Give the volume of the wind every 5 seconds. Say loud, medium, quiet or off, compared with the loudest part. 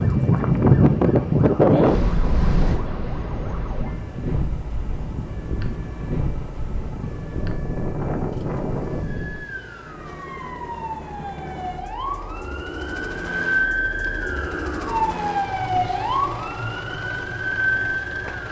loud, medium, off, off.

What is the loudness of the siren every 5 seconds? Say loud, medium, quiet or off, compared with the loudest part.
quiet, quiet, loud, loud.